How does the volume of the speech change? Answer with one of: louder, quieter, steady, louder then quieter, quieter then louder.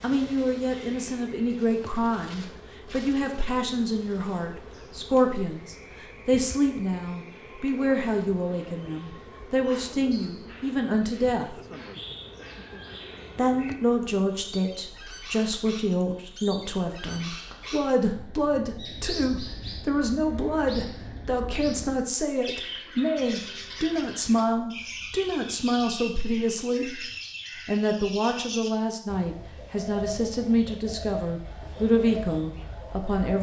steady.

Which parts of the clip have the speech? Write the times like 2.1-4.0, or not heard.
0.0-11.6, 13.3-27.0, 27.6-33.3.